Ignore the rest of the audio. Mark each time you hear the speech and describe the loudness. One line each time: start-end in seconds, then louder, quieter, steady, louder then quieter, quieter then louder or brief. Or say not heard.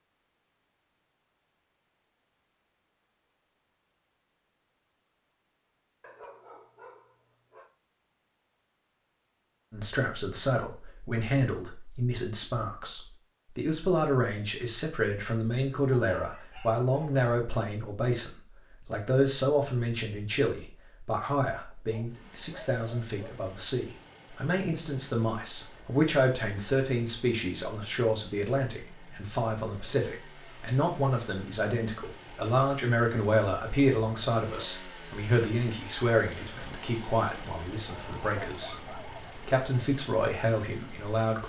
9.7-41.4 steady.